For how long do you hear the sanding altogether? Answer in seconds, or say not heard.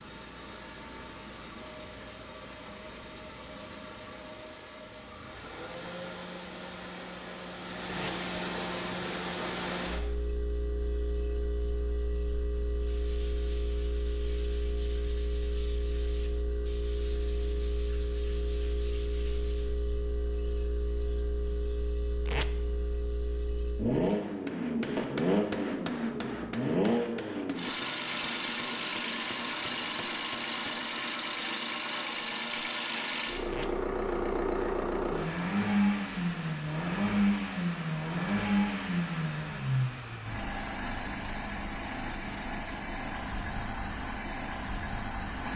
7 s.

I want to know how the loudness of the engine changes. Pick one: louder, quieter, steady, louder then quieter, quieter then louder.
louder.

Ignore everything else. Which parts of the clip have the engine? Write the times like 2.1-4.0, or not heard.
0.0-45.5.